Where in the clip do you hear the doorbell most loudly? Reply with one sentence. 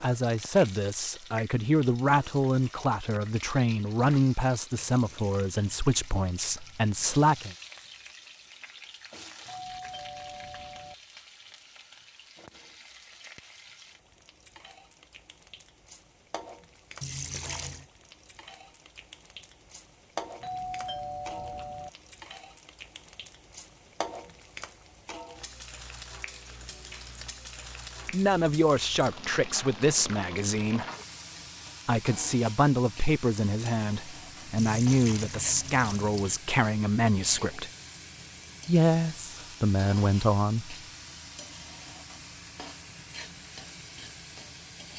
The loudest moment of the doorbell is at 21 seconds.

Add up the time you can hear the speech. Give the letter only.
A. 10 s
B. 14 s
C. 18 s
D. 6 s
C.